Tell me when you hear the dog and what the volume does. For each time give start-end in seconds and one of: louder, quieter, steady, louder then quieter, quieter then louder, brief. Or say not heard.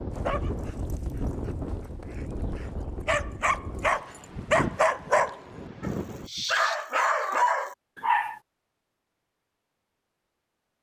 0.1-8.4 louder.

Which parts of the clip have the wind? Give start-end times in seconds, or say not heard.
0.0-6.3.